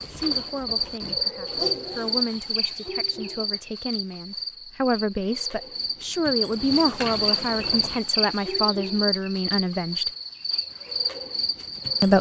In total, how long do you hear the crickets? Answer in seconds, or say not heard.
12 s.